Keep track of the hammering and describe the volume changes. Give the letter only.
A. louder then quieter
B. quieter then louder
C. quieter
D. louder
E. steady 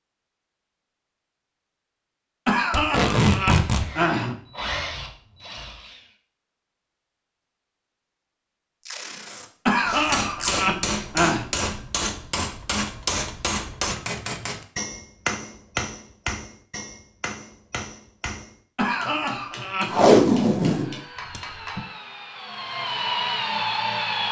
C.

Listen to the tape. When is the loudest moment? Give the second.
20 s.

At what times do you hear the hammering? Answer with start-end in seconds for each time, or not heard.
9.8-21.8.